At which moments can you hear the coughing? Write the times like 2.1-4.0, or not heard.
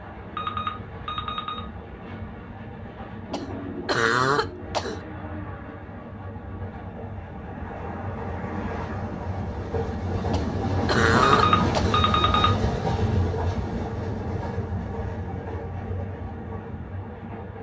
3.3-5.0, 10.3-12.1.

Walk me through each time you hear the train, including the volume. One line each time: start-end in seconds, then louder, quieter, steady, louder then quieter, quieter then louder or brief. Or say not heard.
0.0-17.5 louder then quieter.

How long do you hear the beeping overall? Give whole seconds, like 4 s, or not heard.
3 s.